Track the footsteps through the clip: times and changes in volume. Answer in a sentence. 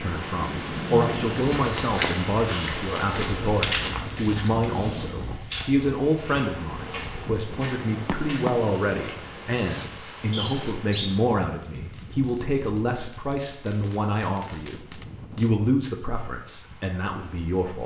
You can hear the footsteps from 1.4 to 9.3 s, getting quieter.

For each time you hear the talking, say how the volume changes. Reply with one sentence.
You can hear the talking from 0.0 to 17.8 s, at a steady volume.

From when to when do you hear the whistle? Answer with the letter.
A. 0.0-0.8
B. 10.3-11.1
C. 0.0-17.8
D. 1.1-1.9
B.